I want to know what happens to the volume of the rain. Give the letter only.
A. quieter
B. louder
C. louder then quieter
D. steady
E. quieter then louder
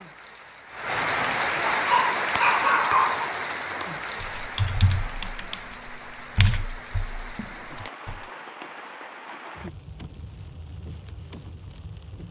A.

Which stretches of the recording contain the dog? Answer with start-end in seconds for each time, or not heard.
1.7-3.3.